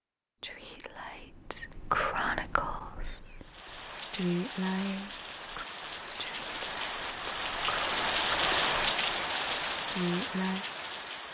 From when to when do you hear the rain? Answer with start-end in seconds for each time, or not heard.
3.4-11.2.